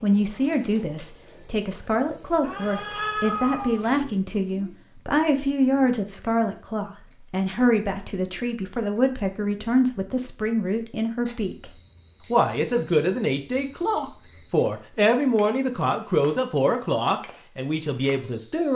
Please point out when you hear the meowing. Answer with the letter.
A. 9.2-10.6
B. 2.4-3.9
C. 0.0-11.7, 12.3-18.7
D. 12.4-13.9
B.